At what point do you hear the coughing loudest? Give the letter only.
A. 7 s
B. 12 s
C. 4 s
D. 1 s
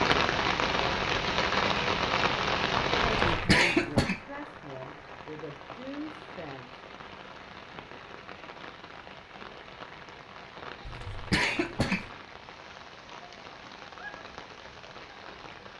C.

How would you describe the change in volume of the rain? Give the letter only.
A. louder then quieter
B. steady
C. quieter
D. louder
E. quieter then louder
C.